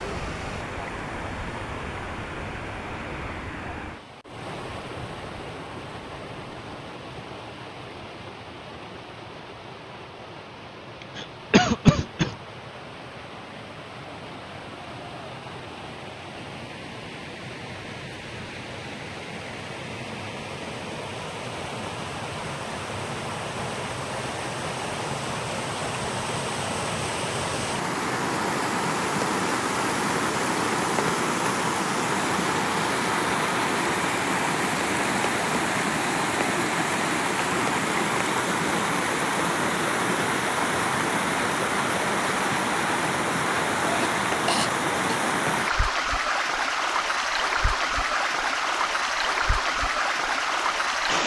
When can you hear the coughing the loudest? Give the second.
12 s.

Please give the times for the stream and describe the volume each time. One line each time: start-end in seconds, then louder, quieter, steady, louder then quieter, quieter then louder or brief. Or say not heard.
0.0-51.2 louder.